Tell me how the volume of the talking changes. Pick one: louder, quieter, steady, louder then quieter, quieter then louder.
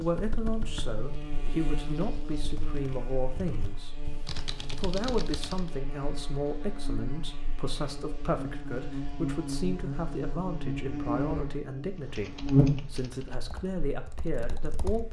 steady.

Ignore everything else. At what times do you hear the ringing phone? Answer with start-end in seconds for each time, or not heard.
not heard.